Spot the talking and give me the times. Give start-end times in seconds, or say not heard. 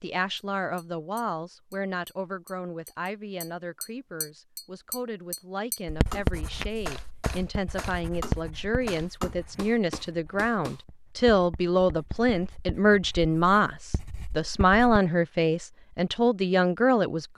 0.0-17.3.